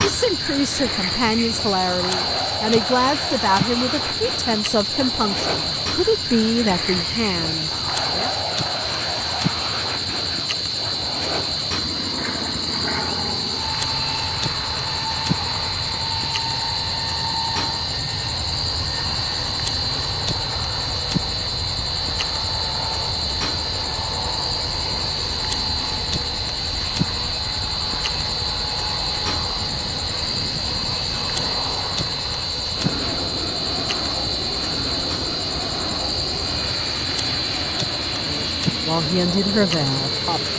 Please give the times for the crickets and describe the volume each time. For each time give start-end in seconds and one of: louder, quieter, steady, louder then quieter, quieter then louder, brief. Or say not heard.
0.0-40.5 steady.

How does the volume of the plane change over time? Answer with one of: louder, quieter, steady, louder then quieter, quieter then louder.
steady.